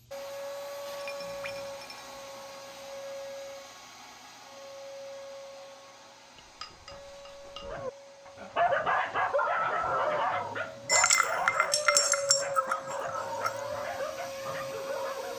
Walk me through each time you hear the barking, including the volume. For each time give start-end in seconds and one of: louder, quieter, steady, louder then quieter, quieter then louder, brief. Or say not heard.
7.6-15.3 quieter.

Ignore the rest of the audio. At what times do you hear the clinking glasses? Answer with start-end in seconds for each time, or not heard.
0.9-2.5, 6.3-7.8, 10.8-13.6.